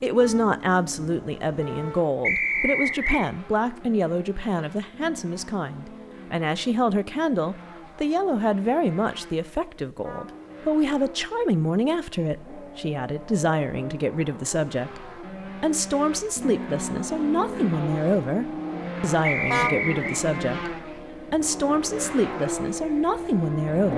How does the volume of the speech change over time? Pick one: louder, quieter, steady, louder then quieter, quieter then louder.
steady.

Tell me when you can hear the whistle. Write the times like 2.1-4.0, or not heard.
2.2-3.2, 19.2-20.2.